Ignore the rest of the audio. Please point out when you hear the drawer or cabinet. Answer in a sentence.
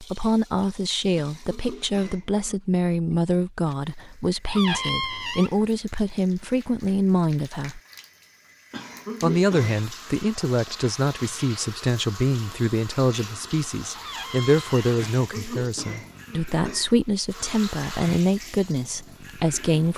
You can hear the drawer or cabinet from 4.5 to 5.5 s and from 13.9 to 14.9 s.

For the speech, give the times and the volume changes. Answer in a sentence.
The speech can be heard from 0.0 to 7.8 s, at a steady volume; and from 9.2 to 19.9 s, at a steady volume.